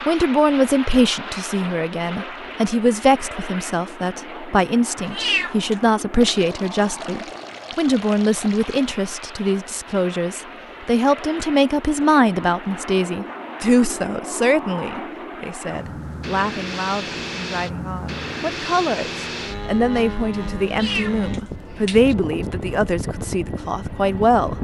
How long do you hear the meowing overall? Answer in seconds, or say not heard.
2 s.